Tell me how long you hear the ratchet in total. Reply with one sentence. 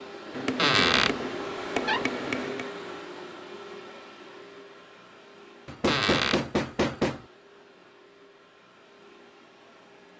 The ratchet can't be heard in this clip.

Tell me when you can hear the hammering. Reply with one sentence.
You can hear the hammering from 0.3 to 2.7 s and from 5.7 to 7.2 s.